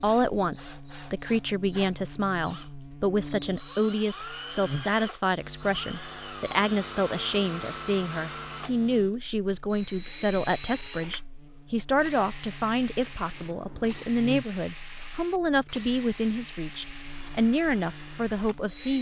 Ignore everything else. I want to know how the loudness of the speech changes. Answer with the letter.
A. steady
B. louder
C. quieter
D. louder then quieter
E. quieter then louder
A.